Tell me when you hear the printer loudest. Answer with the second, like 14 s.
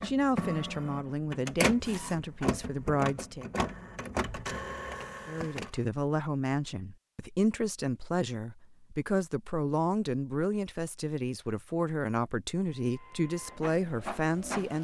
2 s.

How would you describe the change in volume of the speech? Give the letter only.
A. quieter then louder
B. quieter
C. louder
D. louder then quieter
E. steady
E.